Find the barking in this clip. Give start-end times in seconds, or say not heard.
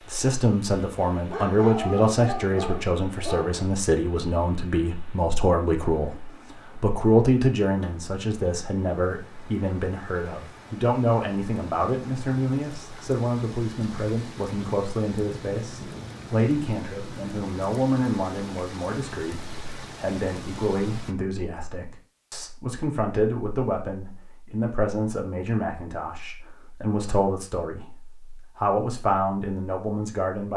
1.1-3.6.